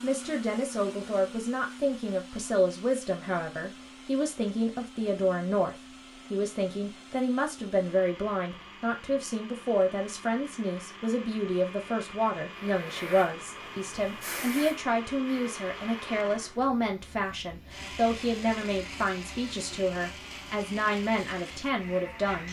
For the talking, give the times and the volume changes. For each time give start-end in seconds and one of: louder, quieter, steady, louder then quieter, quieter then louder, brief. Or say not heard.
0.0-22.4 steady.